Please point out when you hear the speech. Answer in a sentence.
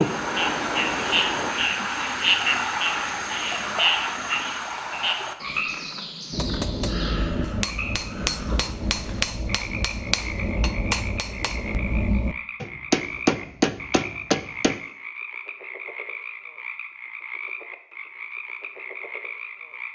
The speech can't be heard in this clip.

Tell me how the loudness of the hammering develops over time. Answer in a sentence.
The volume of the hammering goes up.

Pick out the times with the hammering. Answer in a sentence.
The hammering can be heard from 6.3 to 14.8 s.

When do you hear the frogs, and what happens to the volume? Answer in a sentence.
You can hear the frogs from 0.0 to 19.9 s, getting quieter.